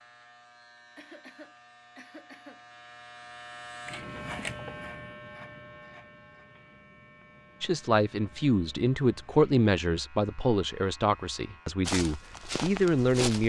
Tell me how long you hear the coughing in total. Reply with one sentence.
You can hear the coughing for 2 seconds altogether.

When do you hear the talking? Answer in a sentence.
You can hear the talking from 7.6 to 13.4 s.